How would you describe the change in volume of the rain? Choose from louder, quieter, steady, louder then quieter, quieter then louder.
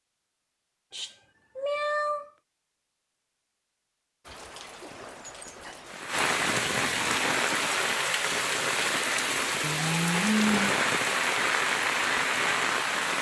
louder.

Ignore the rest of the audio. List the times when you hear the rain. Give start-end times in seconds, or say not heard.
4.2-13.1.